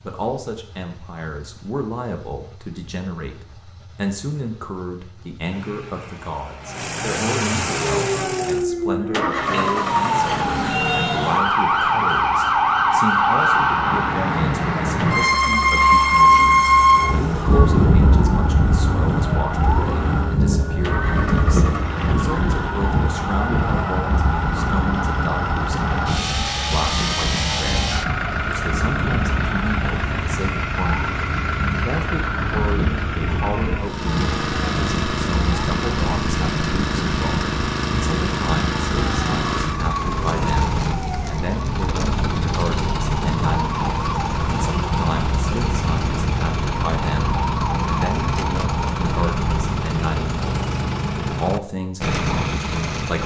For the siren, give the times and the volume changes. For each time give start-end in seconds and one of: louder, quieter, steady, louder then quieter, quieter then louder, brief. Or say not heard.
7.7-49.9 quieter.